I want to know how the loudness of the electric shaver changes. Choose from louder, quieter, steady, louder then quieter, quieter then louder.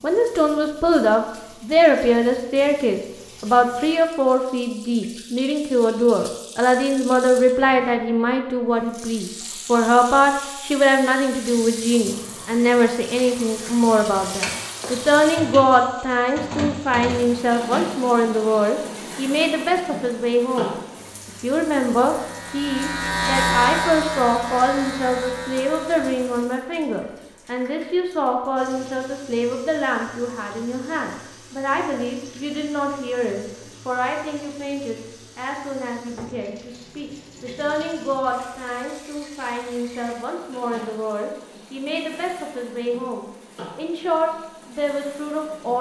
louder then quieter.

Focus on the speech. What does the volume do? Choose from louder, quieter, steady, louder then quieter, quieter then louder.
quieter.